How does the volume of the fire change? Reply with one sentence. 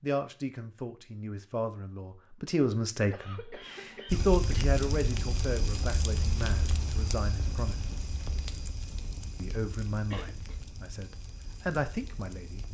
The volume of the fire goes down.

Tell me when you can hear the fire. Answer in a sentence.
The fire can be heard from 4.0 to 12.6 s.